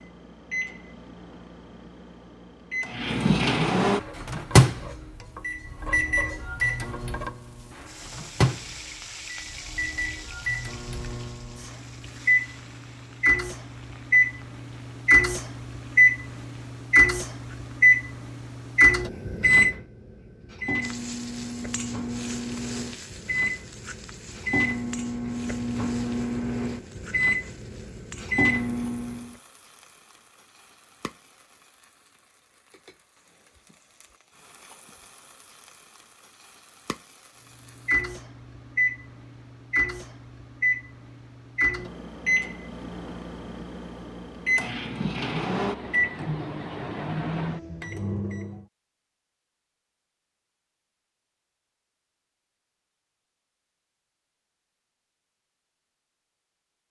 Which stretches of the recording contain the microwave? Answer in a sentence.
The microwave can be heard from 0.0 to 29.4 s and from 37.9 to 48.6 s.